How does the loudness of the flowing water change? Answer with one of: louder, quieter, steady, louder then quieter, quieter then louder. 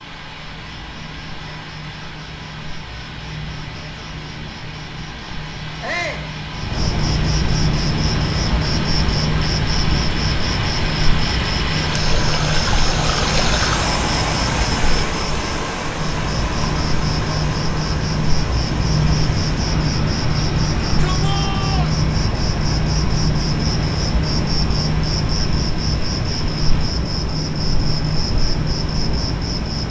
louder then quieter.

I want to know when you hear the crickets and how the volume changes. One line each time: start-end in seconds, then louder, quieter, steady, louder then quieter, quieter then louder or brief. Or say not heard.
0.0-29.8 louder.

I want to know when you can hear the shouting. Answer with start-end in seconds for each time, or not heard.
5.8-6.2, 20.9-21.9.